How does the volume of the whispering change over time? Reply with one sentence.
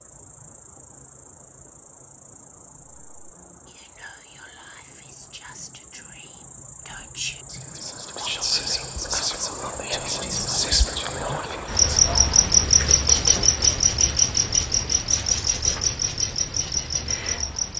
The volume of the whispering goes up.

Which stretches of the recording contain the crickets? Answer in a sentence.
You can hear the crickets from 0.0 to 17.7 s.